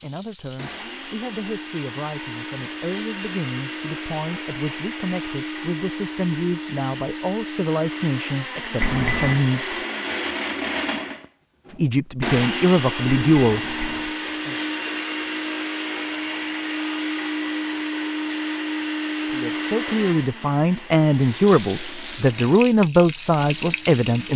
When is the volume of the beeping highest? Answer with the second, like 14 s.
9 s.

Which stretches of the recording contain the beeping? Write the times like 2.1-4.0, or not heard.
8.8-9.4, 13.1-14.2.